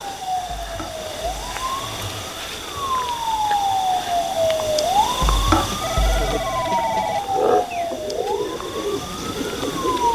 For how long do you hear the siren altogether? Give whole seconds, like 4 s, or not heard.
10 s.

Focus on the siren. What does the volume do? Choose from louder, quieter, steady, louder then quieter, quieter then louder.
louder then quieter.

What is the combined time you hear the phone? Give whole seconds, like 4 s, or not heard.
4 s.